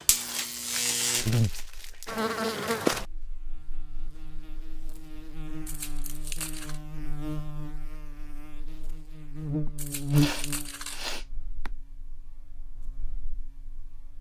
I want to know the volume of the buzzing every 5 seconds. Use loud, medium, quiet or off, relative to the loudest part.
loud, medium, loud.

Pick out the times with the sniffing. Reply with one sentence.
The sniffing can be heard from 9.7 to 11.7 s.